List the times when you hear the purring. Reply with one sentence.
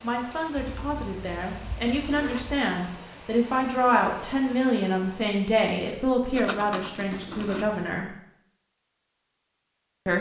You can't hear the purring here.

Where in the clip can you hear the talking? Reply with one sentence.
The talking can be heard from 0.0 to 8.1 s.